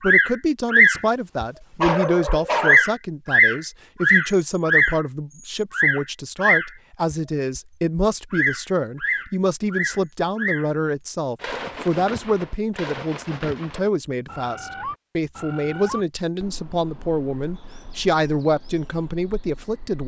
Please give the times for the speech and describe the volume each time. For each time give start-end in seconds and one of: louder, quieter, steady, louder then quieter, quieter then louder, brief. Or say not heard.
0.0-20.0 steady.